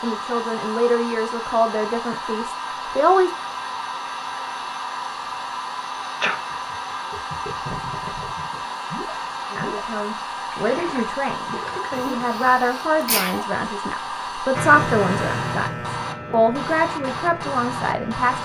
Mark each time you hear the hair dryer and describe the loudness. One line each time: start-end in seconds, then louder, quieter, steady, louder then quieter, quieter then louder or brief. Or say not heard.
0.0-18.4 steady.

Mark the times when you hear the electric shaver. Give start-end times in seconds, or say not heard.
14.5-18.4.